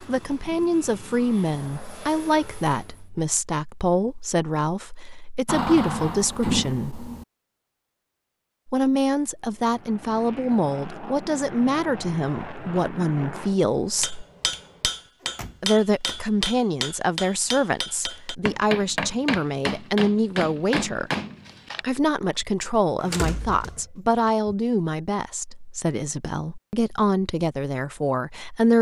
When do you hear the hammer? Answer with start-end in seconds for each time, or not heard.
14.0-21.8.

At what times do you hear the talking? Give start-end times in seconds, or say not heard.
0.0-7.1, 8.7-14.2, 15.6-21.1, 21.8-28.7.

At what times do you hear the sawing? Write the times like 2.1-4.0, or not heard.
not heard.